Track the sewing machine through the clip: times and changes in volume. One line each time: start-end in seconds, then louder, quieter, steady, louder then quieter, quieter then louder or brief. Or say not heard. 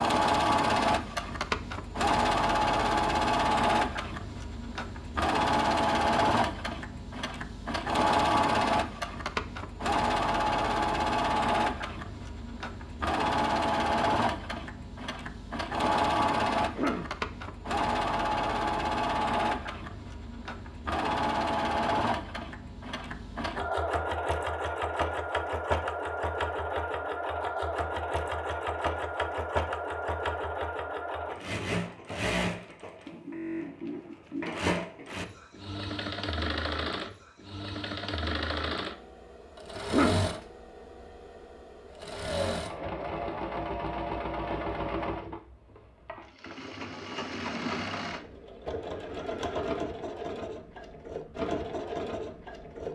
0.0-52.9 quieter.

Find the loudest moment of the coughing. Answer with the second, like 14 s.
40 s.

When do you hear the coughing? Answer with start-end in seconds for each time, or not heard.
16.6-17.1, 39.8-40.3.